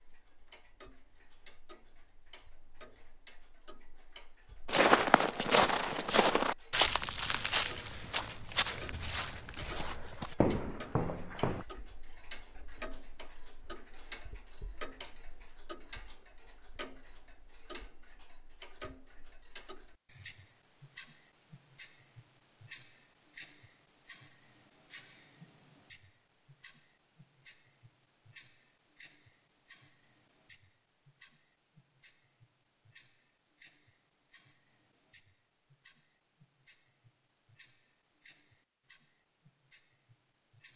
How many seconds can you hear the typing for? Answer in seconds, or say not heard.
not heard.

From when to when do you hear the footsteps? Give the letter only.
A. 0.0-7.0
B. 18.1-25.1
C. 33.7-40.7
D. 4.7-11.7
D.